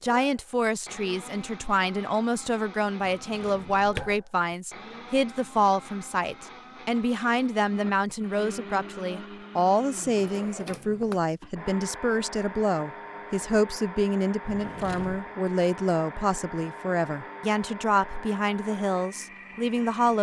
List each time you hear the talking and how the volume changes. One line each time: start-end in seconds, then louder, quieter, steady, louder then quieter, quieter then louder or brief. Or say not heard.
0.0-20.1 steady.